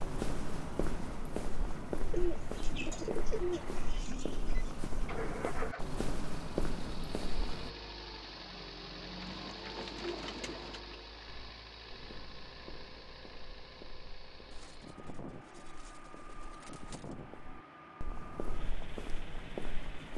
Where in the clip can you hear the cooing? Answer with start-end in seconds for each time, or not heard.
2.1-4.8, 9.2-10.8, 14.5-17.1.